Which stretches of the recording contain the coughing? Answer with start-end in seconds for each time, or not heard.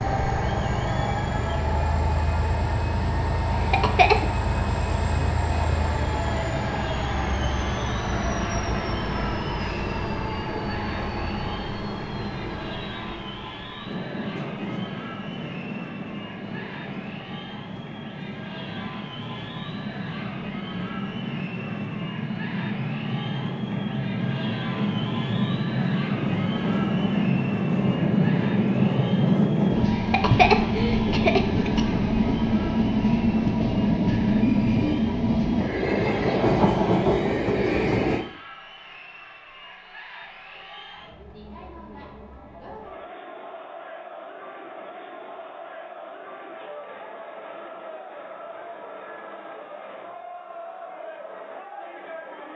3.7-4.2, 30.1-31.8.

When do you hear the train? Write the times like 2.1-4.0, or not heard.
0.0-38.2.